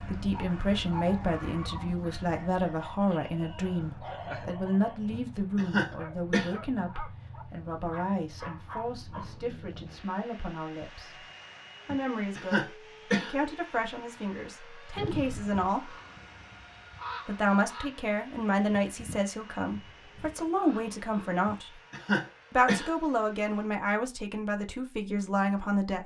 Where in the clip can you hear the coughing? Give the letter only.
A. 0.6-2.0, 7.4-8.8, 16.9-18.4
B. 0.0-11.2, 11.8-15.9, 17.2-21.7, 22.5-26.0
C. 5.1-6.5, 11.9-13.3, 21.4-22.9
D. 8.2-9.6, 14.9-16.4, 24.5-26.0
C.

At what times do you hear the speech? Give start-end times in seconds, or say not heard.
0.0-11.2, 11.8-15.9, 17.2-21.7, 22.5-26.0.